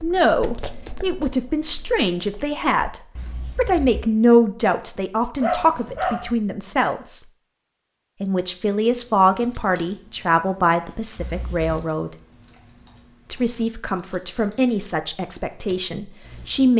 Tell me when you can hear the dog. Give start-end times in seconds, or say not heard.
5.4-6.3.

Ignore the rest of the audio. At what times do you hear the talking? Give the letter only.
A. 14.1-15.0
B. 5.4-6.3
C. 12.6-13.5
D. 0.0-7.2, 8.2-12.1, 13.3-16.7
D.